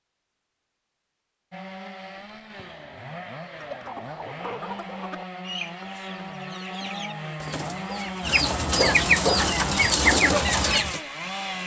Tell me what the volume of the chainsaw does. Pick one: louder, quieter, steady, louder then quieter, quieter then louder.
louder.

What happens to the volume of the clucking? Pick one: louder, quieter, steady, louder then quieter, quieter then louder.
louder.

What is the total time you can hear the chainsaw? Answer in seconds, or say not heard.
10 s.